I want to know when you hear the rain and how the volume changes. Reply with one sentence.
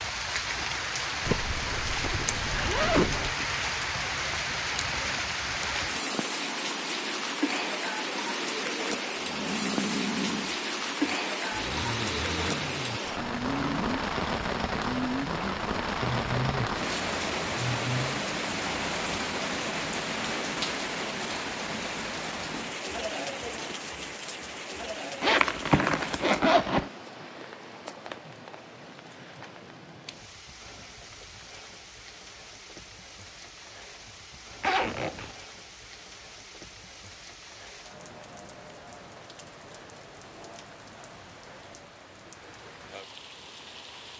You can hear the rain from 0.0 to 44.1 s, getting quieter.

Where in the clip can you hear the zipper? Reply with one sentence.
The zipper can be heard from 1.2 to 3.4 s, from 25.2 to 26.9 s and from 34.6 to 35.4 s.